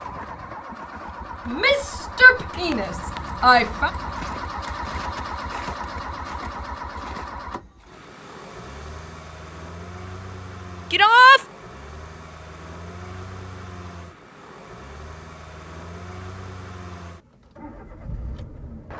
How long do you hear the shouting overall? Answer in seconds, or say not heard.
3 s.